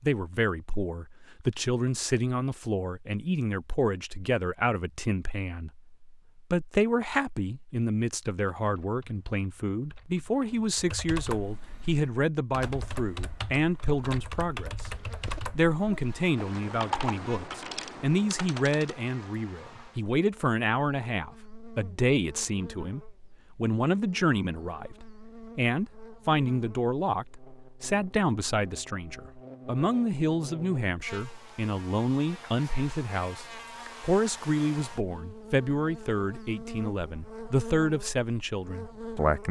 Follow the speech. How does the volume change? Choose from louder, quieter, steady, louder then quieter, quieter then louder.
steady.